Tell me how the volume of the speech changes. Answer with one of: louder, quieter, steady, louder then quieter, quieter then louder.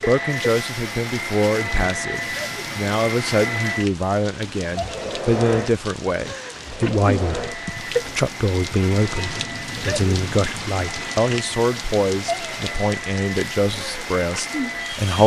steady.